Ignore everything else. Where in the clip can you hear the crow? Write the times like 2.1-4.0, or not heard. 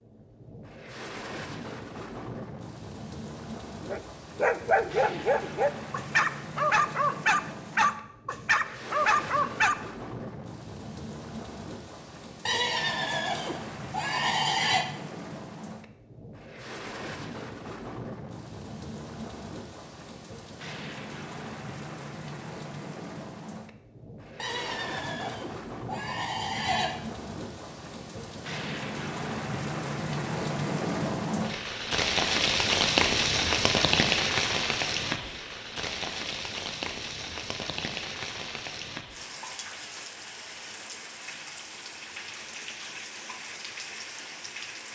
not heard.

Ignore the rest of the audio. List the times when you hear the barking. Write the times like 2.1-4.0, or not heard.
3.9-9.8.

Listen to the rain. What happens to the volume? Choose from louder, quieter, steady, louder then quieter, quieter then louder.
louder then quieter.